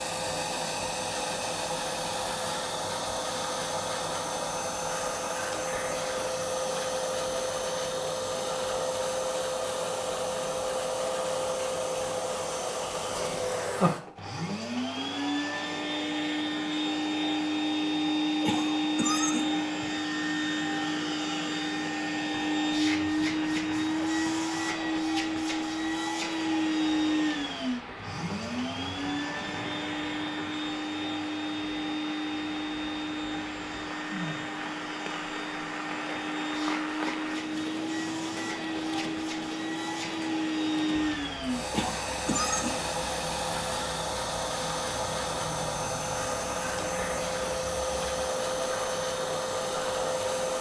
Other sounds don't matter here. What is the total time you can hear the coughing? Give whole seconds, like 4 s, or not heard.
3 s.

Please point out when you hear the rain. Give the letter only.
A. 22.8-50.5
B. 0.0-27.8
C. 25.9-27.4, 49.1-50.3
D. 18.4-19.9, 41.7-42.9
A.